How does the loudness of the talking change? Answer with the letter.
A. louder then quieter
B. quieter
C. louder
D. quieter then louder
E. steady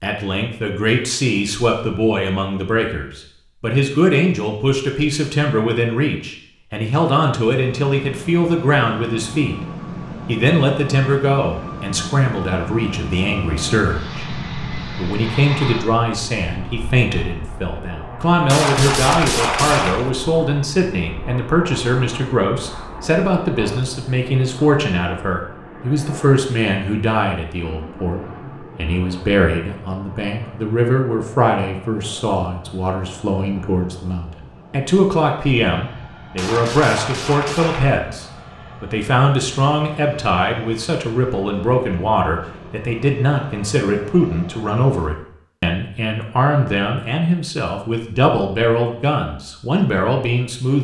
E.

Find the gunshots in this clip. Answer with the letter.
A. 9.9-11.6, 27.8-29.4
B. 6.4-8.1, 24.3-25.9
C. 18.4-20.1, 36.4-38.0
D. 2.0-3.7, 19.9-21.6
C.